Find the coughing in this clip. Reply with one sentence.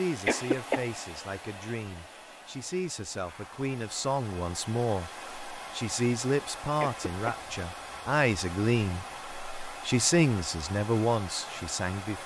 You can hear the coughing from 0.2 to 0.8 s and from 6.8 to 7.3 s.